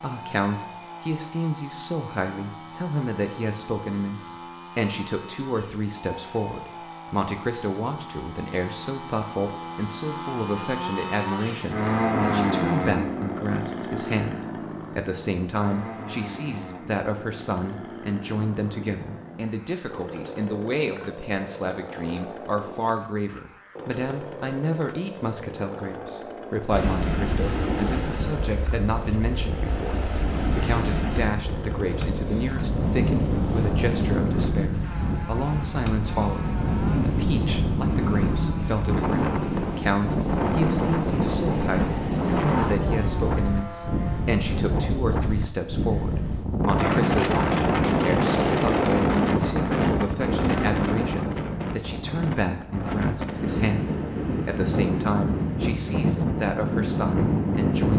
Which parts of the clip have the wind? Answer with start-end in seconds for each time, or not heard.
26.7-57.9.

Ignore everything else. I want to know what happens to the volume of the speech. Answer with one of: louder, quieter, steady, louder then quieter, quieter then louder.
steady.